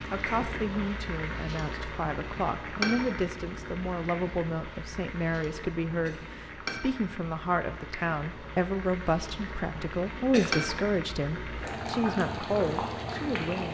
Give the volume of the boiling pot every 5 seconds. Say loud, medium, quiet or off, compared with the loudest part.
loud, medium, loud.